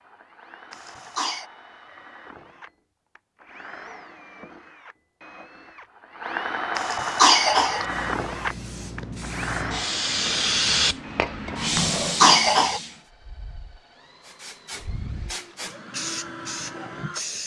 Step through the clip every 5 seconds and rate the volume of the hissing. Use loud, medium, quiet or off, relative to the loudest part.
off, medium, loud, medium.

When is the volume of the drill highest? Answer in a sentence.
The volume of the drill peaks at 7 seconds.